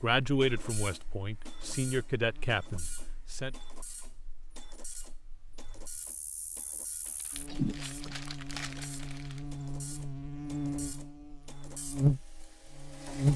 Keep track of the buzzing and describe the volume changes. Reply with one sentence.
The loudness of the buzzing goes up.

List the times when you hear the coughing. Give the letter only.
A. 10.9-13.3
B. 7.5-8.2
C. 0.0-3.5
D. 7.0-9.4
B.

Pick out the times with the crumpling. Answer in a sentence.
The crumpling can be heard from 7.0 to 9.4 s.